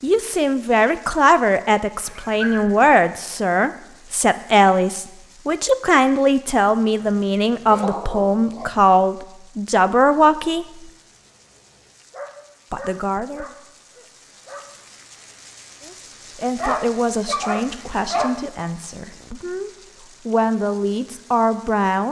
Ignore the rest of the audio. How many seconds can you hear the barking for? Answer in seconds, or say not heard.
7 s.